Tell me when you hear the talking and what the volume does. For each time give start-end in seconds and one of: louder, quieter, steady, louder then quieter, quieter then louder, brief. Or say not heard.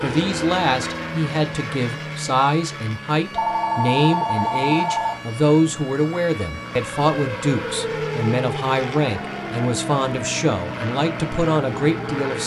0.0-12.4 steady.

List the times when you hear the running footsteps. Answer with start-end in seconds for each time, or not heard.
not heard.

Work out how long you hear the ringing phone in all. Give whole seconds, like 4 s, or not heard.
2 s.